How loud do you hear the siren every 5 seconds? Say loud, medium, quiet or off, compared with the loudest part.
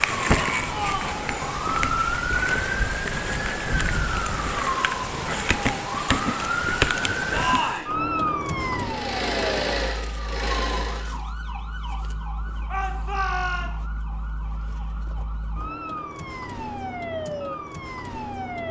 loud, loud, quiet, medium.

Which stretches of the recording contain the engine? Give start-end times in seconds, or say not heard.
8.7-11.1.